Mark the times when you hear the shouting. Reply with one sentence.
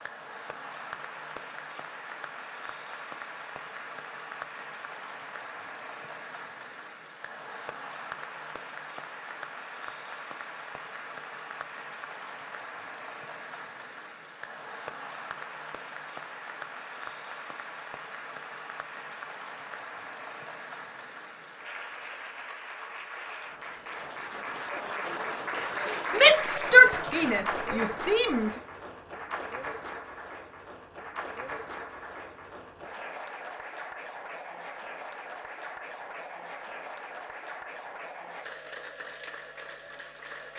The shouting can be heard from 26.1 to 28.5 s.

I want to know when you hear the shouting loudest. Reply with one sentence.
The loudest moment of the shouting is at 27 seconds.